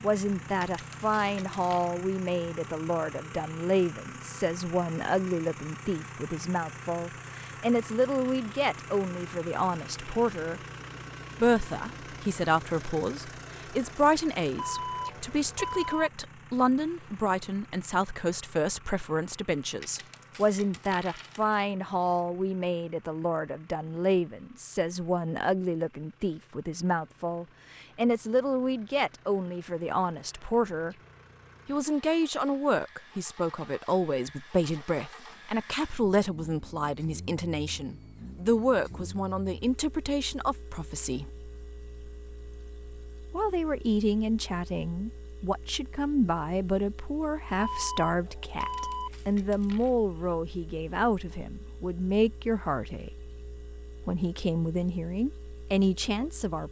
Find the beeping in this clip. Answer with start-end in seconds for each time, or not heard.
14.6-16.1, 47.5-49.1.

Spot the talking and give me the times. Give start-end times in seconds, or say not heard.
0.0-10.6, 11.4-30.9, 31.6-41.3, 43.3-53.1, 54.0-56.6.